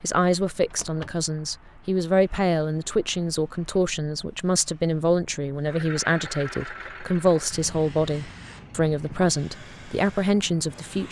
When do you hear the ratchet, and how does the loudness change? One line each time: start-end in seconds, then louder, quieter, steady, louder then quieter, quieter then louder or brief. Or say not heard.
not heard.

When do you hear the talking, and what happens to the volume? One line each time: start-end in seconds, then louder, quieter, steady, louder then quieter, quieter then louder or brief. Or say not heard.
0.0-11.0 steady.